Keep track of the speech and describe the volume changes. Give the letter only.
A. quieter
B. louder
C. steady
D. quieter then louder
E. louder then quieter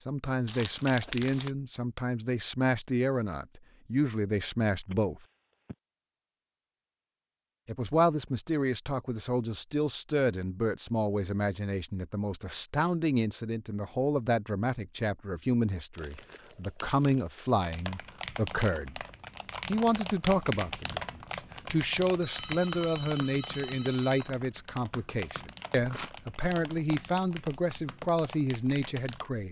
C.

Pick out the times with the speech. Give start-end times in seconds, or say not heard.
0.1-5.2, 7.7-19.0, 19.6-29.4.